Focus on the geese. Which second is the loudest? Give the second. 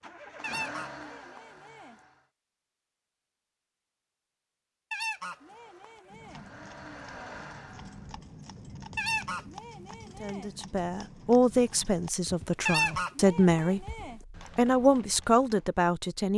13 s.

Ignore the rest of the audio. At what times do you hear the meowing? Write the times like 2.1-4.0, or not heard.
not heard.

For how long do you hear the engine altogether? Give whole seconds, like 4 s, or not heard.
5 s.